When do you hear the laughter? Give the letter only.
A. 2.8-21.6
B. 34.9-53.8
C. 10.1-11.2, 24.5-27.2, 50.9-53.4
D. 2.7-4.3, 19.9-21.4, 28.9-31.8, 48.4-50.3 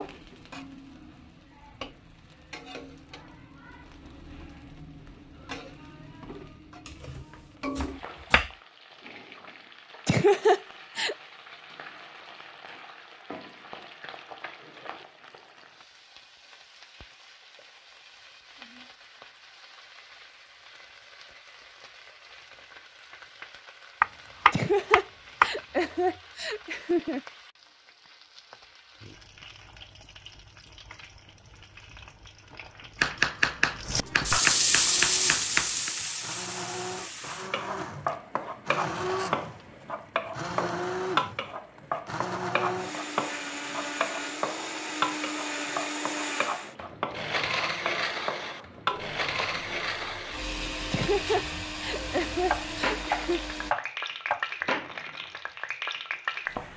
C.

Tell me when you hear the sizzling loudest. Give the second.
35 s.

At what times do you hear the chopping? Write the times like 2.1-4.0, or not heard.
6.8-8.5, 24.0-25.5, 33.0-35.9, 52.5-54.5.